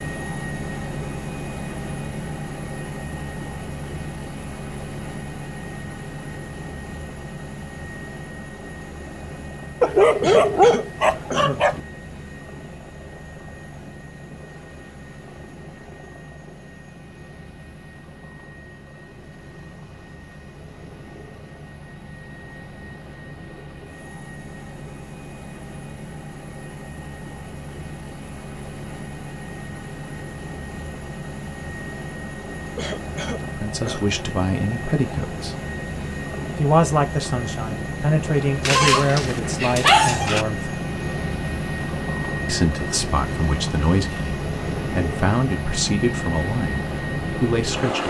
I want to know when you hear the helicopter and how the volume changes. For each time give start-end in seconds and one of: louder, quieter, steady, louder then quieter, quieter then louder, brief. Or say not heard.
0.0-48.0 quieter then louder.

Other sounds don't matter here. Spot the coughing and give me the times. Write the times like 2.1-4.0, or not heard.
10.2-11.6, 32.8-34.0.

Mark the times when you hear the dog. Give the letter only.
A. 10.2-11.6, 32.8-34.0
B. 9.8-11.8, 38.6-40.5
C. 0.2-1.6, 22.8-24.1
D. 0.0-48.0
B.